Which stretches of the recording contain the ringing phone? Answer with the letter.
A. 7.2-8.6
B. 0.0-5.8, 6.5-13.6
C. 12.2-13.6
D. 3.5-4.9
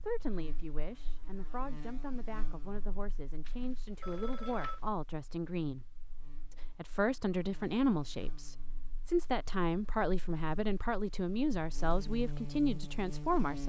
D.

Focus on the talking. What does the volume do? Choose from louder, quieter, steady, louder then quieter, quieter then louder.
louder.